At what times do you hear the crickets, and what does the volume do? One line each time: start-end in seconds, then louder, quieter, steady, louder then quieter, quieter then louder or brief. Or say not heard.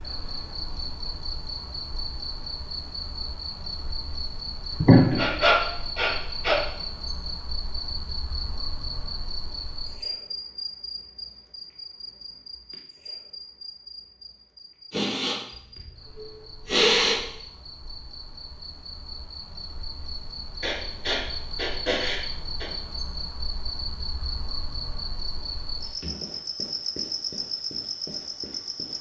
0.0-28.9 quieter then louder.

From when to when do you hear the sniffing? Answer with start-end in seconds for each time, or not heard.
4.8-6.6, 14.9-15.4, 16.6-17.2, 20.6-22.7.